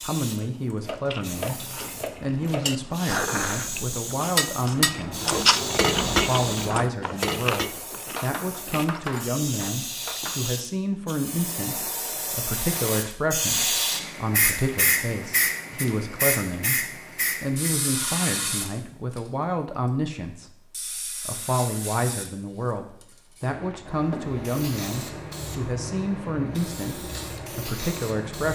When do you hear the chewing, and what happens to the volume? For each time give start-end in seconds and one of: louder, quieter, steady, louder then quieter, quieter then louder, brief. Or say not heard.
1.0-9.1 louder then quieter.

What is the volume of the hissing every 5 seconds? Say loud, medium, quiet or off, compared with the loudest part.
medium, medium, loud, loud, medium, medium.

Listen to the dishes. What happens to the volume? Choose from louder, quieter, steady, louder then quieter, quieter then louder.
louder then quieter.